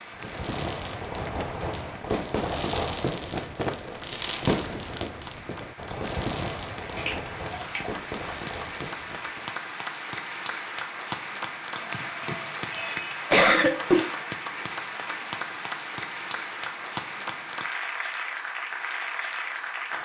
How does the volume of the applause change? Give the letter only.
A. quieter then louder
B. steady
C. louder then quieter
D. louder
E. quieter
D.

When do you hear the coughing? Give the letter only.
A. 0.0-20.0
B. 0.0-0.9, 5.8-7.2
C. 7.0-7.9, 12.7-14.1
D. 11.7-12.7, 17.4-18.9
C.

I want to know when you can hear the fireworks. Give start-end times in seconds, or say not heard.
0.1-9.6.